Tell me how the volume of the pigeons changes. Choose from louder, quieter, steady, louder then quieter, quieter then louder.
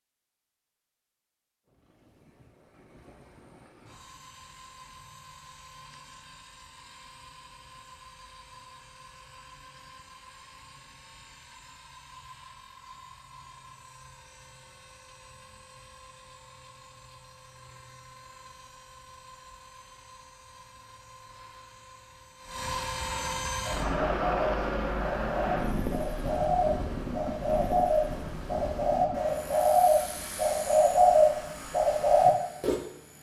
louder.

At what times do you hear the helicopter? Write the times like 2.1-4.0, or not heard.
1.6-33.1.